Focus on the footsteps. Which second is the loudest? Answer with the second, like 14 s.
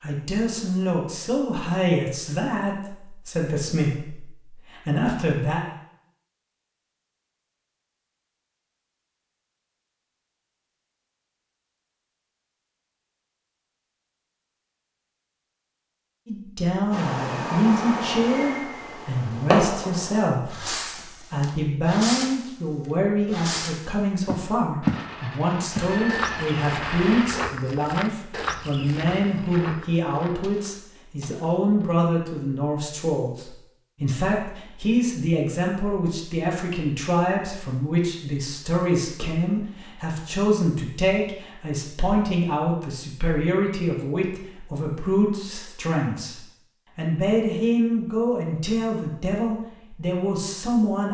25 s.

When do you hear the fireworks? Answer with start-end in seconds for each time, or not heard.
16.9-22.4, 23.3-23.9, 24.8-27.2.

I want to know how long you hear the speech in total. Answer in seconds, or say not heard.
40 s.